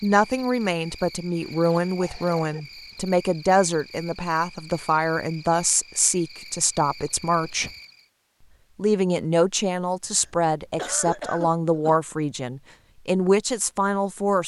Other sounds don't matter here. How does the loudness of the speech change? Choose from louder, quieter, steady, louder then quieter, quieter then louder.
steady.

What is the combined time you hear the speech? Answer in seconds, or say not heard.
13 s.